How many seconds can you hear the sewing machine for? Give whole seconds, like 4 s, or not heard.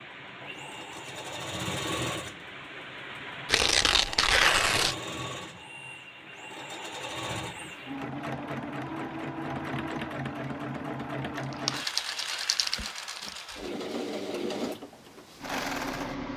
16 s.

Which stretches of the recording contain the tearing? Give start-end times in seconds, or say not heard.
3.5-5.0, 11.3-13.3.